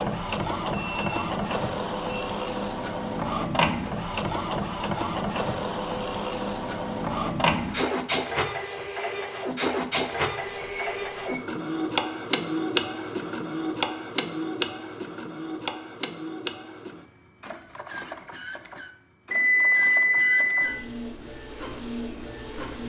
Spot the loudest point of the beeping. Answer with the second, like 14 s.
20 s.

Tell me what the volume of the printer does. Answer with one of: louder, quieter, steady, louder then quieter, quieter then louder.
quieter.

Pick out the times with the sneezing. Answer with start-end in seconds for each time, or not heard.
not heard.